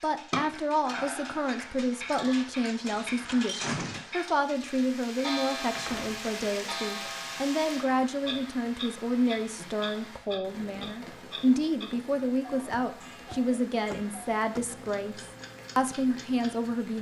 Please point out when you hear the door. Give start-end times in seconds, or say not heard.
2.9-4.0, 5.8-6.2, 12.7-14.8.